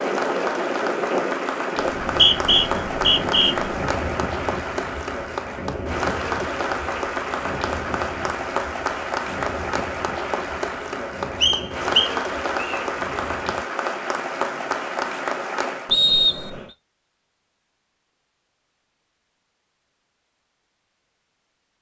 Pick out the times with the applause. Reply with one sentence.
You can hear the applause from 0.0 to 15.9 s.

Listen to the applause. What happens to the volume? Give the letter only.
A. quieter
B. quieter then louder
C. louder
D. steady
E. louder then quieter
D.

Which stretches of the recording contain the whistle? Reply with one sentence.
The whistle can be heard from 2.0 to 3.5 s, from 11.4 to 12.8 s and from 15.9 to 16.6 s.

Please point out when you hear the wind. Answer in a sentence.
The wind can be heard from 0.0 to 13.7 s.